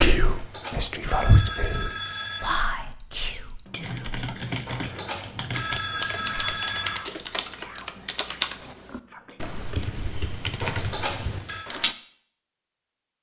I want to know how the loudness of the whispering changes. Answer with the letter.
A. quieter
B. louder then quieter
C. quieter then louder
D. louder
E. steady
A.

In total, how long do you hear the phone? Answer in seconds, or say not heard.
6 s.